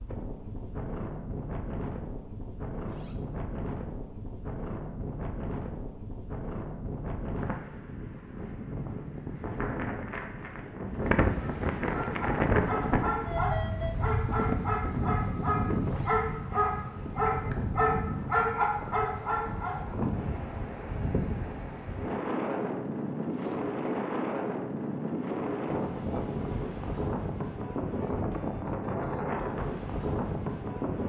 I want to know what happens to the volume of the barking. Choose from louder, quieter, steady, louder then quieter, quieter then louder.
louder.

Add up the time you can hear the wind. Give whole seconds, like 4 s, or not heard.
31 s.